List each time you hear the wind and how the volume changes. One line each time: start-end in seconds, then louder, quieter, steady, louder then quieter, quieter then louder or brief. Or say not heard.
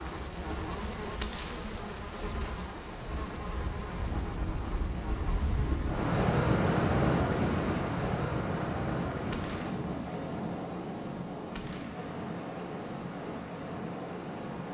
0.0-14.6 louder then quieter.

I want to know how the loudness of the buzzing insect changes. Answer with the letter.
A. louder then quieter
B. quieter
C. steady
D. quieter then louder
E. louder
B.